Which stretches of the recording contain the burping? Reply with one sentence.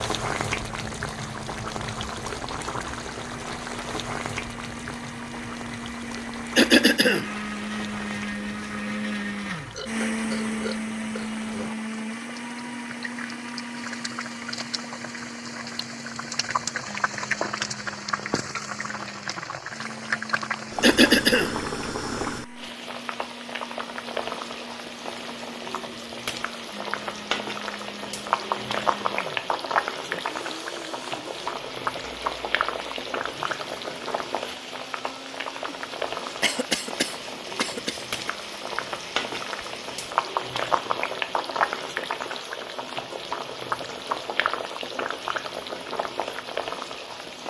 You can hear the burping from 9.7 to 11.8 s.